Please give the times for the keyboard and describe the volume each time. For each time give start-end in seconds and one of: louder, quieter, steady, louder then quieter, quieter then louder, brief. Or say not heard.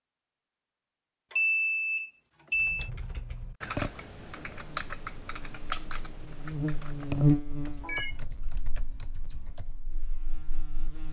2.5-9.8 quieter.